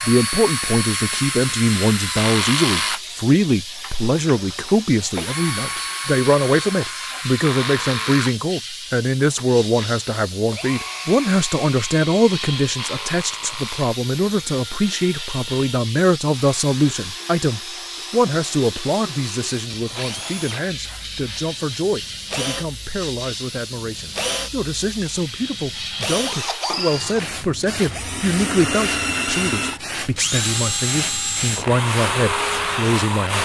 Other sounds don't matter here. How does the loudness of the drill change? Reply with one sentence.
The loudness of the drill goes down, then up.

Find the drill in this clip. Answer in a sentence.
You can hear the drill from 0.0 to 33.4 s.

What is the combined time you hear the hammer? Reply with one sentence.
You can't hear the hammer here.